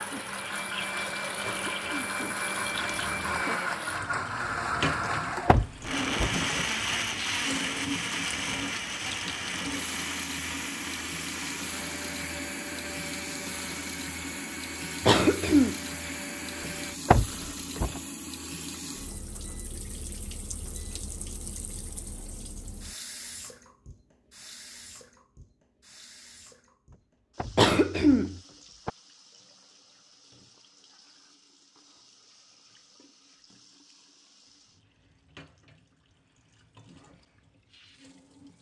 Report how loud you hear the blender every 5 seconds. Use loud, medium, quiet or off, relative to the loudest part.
loud, loud, medium, medium, off, off, off, off.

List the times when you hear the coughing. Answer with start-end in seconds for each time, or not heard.
1.4-3.5, 15.0-15.8, 27.6-28.4.